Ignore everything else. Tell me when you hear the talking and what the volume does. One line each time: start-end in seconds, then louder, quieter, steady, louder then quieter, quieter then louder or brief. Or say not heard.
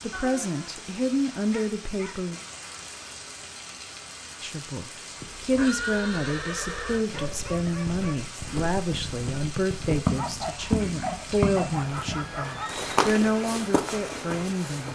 0.0-2.4 brief
4.4-14.9 steady.